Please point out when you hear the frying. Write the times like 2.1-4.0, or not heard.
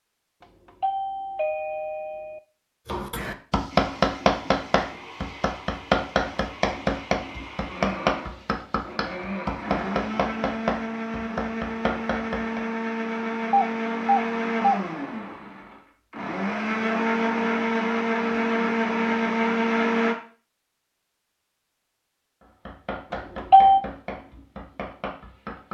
not heard.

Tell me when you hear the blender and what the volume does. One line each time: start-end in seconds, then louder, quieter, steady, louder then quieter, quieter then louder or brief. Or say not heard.
3.8-20.1 louder.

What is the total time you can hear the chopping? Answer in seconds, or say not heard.
13 s.